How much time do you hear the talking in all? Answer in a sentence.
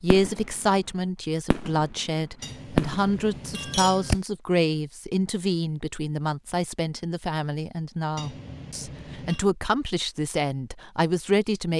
You can hear the talking for 12 seconds altogether.